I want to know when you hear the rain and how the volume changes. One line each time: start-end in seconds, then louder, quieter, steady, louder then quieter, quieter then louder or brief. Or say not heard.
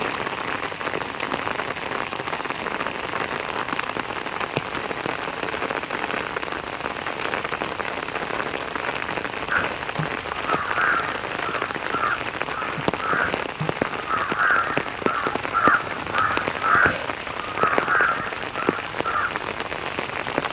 0.0-20.4 steady.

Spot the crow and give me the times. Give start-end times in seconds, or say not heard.
9.5-19.4.